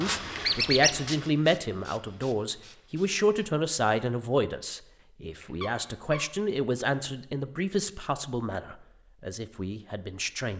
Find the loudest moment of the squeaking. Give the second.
1 s.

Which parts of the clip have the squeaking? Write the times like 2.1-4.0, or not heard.
0.4-1.0, 5.4-6.2.